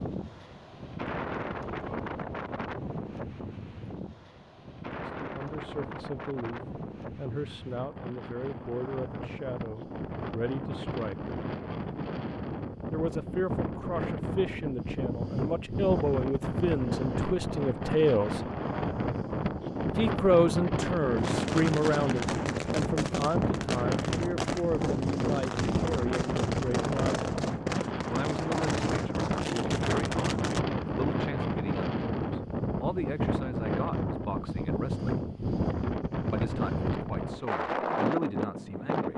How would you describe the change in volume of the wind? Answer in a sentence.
The volume of the wind goes up.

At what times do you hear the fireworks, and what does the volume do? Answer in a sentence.
You can hear the fireworks from 21.1 to 30.6 s, at a steady volume.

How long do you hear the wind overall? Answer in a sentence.
You can hear the wind for 39 seconds altogether.